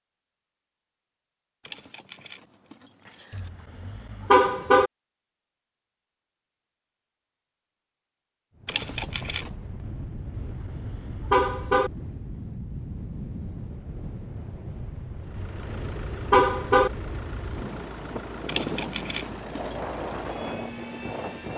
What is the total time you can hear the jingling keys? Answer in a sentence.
You can hear the jingling keys for 4 seconds altogether.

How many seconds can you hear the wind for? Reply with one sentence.
The wind can be heard for 13 seconds in total.